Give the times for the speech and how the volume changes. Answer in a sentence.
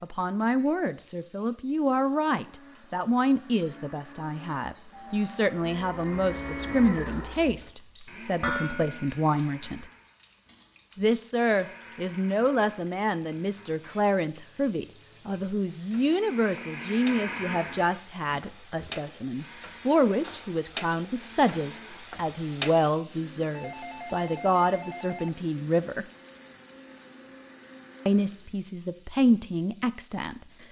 You can hear the speech from 0.0 to 9.8 s, at a steady volume; from 10.9 to 26.1 s, at a steady volume; and briefly from 28.1 to 30.6 s.